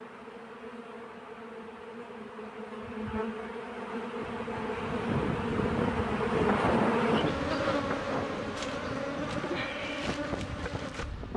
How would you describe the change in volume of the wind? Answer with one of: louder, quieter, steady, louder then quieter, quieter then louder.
quieter.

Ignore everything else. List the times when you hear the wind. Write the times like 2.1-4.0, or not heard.
4.2-11.3.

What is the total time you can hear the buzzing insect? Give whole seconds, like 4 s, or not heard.
11 s.